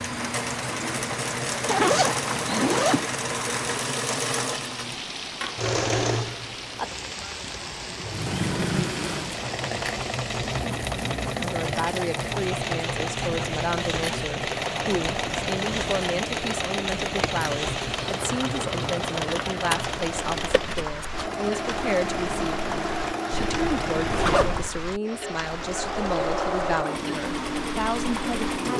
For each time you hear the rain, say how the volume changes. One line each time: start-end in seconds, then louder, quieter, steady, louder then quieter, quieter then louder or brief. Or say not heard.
0.0-28.7 steady.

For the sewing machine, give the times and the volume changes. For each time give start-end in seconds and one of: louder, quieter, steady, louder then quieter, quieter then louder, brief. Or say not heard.
0.0-28.7 steady.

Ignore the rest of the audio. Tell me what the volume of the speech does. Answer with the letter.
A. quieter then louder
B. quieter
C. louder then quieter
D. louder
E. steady
E.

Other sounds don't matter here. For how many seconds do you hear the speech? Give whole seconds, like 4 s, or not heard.
17 s.